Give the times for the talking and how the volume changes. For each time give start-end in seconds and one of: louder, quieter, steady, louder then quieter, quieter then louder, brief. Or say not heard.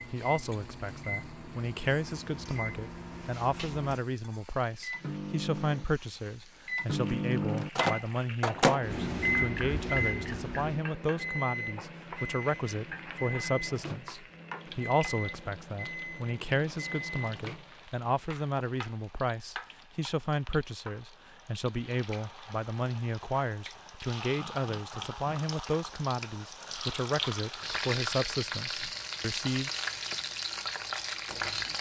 0.1-29.7 steady.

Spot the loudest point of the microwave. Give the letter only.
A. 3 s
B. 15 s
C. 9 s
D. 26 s
C.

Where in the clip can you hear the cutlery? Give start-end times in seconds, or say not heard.
not heard.